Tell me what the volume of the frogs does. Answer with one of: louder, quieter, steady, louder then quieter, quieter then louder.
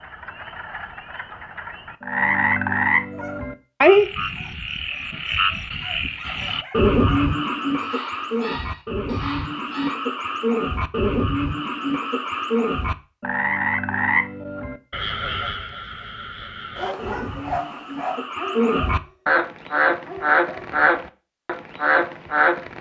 quieter then louder.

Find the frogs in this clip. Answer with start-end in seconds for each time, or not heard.
0.0-22.7.